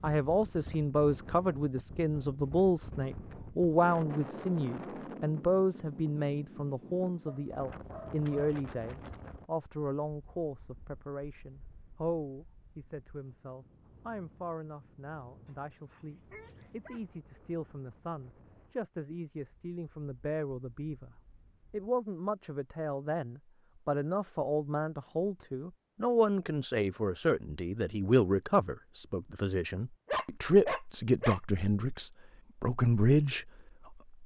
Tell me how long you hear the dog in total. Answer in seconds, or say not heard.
4 s.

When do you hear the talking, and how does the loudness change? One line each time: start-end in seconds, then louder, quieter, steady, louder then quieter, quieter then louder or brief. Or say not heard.
0.0-34.0 quieter then louder.